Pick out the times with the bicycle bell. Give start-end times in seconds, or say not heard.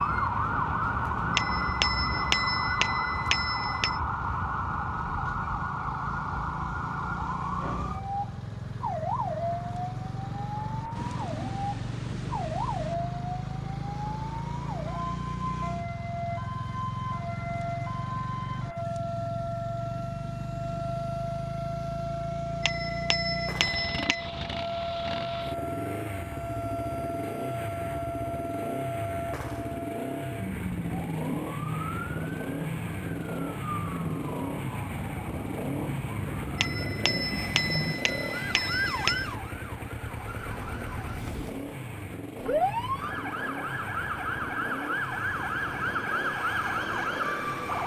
1.4-4.0, 22.6-24.2, 36.5-39.2.